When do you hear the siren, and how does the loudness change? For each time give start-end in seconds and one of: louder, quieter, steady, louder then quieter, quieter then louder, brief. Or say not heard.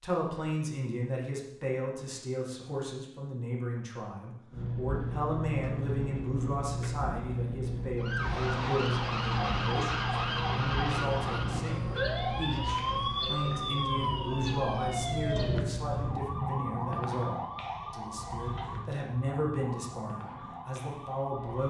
8.0-21.6 quieter.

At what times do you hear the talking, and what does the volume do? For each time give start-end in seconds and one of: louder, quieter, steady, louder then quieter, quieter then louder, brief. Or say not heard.
0.0-21.6 steady.